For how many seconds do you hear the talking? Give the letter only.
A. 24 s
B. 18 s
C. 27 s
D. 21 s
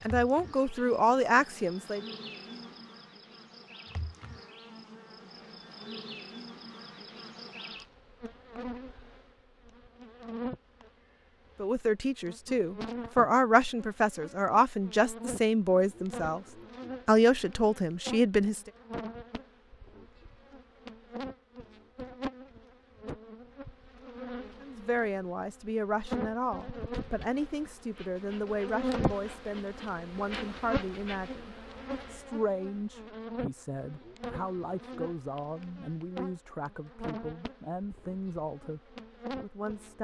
A.